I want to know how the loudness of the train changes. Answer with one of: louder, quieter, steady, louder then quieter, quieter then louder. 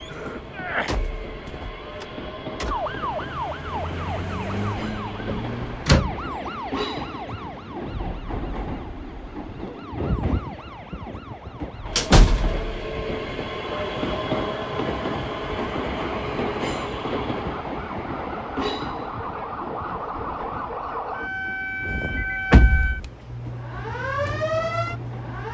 louder then quieter.